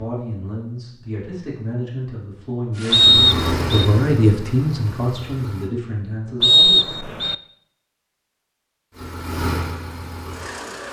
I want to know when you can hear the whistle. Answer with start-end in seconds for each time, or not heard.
2.9-3.9, 6.4-7.3.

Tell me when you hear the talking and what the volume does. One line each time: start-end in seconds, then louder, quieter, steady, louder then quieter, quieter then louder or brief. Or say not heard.
0.0-6.9 louder then quieter.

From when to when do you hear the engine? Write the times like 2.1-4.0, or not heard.
2.7-5.7, 8.9-10.8.